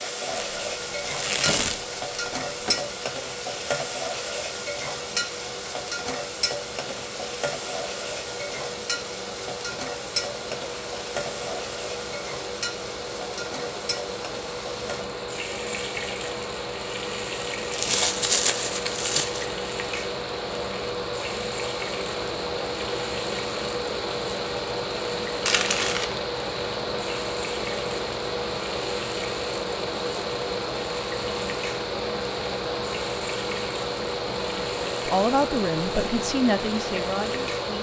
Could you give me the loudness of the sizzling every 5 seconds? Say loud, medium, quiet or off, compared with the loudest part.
loud, loud, loud, medium, medium, medium, medium, medium.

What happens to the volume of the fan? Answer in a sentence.
The volume of the fan goes up.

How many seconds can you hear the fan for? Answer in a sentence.
The fan can be heard for 38 seconds in total.